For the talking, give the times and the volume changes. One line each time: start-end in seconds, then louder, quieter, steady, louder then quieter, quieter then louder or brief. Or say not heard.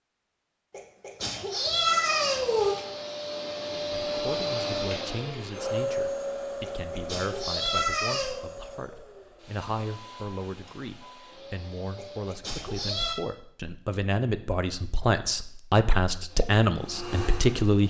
3.7-17.8 louder.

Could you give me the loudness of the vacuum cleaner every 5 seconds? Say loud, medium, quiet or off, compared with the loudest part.
loud, loud, quiet, medium.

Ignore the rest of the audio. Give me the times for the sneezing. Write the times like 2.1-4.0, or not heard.
0.7-2.8, 6.6-8.3, 11.9-13.2.